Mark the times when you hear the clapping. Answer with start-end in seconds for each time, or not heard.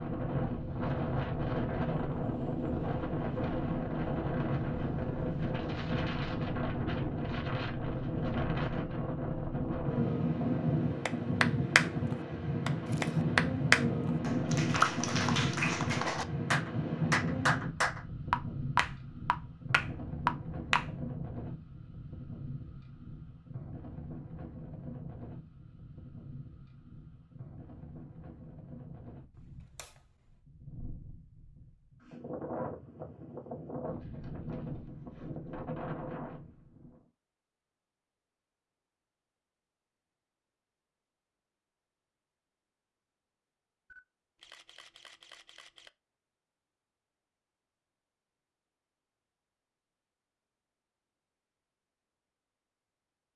11.1-20.9.